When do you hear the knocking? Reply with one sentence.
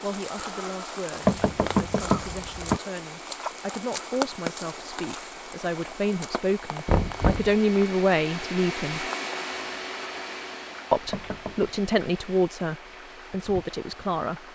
You can hear the knocking from 1.2 to 2.8 s, from 6.8 to 7.5 s and from 11.1 to 11.7 s.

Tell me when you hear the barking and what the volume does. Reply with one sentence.
The barking can't be heard in this clip.